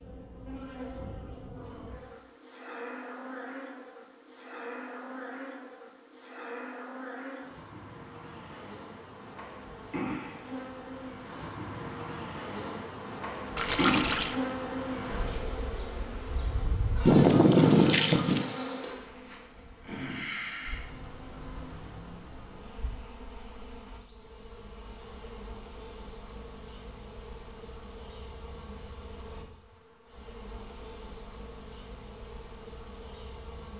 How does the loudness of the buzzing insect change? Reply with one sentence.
The volume of the buzzing insect goes up, then down.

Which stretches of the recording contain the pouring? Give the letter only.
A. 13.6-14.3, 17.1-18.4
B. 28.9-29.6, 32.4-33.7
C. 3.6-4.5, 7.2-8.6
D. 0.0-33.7
A.